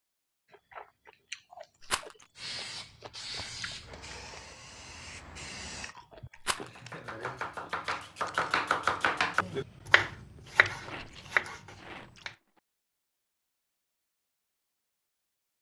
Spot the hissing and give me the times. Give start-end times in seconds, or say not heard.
2.4-6.0.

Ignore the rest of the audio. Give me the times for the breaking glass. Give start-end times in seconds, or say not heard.
not heard.